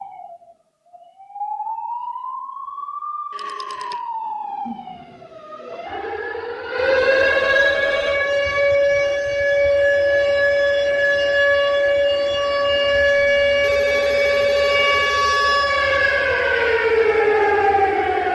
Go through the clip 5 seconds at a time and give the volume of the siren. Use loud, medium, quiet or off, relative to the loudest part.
quiet, loud, loud, loud.